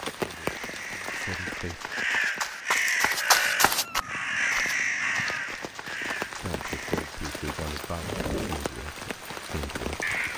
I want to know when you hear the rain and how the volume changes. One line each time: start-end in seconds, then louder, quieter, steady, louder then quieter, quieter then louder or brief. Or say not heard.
0.0-10.3 quieter then louder.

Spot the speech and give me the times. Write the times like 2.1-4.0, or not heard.
0.1-1.9, 6.3-10.3.